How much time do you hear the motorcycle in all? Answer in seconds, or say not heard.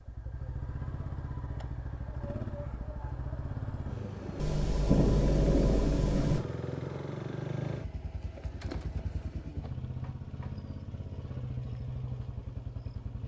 13 s.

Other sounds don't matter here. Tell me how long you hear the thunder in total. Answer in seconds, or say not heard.
2 s.